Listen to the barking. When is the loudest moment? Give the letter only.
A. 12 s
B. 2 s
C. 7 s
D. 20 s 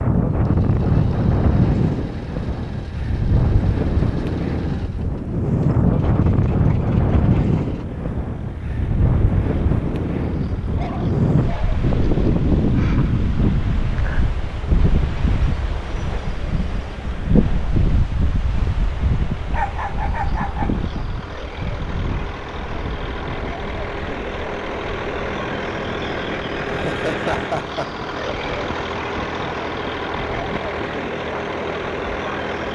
D.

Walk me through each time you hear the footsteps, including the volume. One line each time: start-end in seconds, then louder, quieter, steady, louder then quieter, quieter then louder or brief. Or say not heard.
not heard.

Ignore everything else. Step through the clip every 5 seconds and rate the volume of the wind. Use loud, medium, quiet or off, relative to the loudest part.
loud, loud, loud, medium, medium, quiet, quiet.